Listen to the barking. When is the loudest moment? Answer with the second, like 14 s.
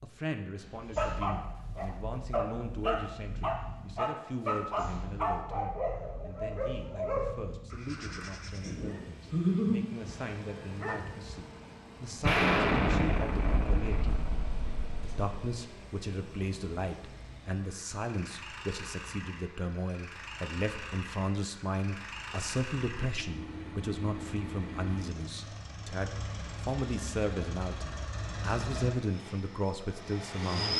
10 s.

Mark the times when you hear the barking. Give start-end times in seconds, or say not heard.
0.9-11.3.